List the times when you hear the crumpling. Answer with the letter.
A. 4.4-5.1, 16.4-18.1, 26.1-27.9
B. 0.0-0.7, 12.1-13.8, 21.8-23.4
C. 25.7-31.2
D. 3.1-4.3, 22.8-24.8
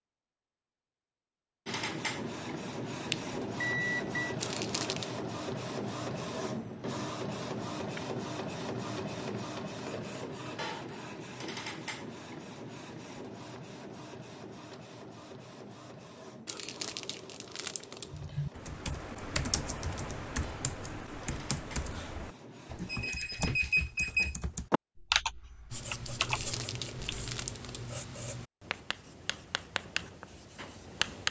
A.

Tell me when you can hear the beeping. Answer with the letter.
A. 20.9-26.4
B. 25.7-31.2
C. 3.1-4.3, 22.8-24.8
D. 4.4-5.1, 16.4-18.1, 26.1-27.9
C.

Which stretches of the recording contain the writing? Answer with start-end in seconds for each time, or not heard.
25.7-31.2.